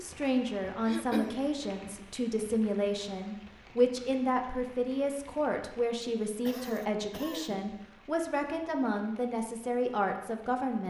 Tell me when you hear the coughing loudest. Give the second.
1 s.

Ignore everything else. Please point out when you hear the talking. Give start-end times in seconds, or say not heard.
0.0-10.8.